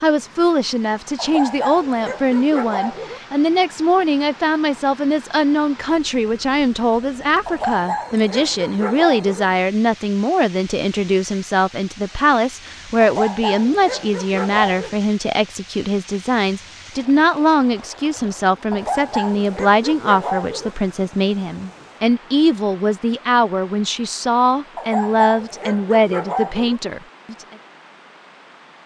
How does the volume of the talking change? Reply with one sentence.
The volume of the talking stays about the same.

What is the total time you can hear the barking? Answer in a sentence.
The barking can be heard for 10 seconds in total.